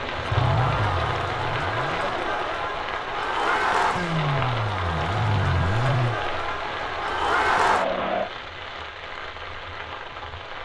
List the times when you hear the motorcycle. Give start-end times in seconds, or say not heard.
0.1-2.1, 3.9-6.2.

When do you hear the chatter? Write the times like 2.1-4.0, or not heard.
0.0-8.3.